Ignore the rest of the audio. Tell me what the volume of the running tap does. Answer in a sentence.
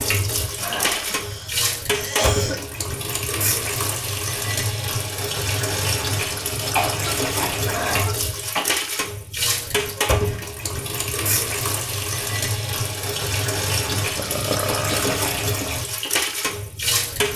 The loudness of the running tap stays about the same.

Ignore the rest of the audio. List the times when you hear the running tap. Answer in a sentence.
You can hear the running tap from 0.0 to 17.3 s.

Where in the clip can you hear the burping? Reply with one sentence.
The burping can be heard from 0.4 to 1.2 s, from 7.5 to 8.2 s and from 14.2 to 15.2 s.